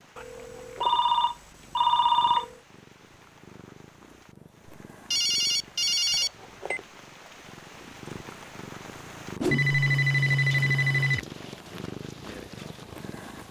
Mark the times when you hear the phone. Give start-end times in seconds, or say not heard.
0.1-2.5, 5.1-6.8, 9.4-11.2.